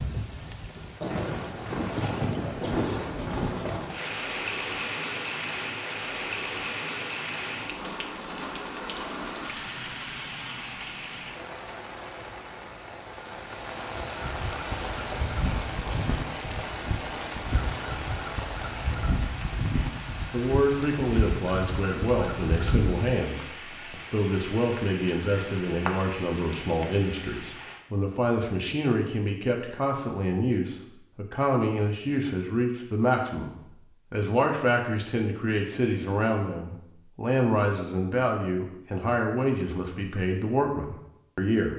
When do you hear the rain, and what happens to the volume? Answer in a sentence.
The rain can be heard from 0.0 to 27.9 s, getting quieter.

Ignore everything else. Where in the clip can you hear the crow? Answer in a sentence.
The crow can be heard from 14.1 to 23.1 s.